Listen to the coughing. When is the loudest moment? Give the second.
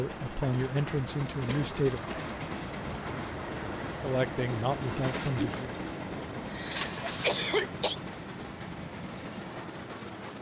7 s.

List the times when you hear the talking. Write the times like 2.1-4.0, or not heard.
0.0-2.1, 4.0-5.7.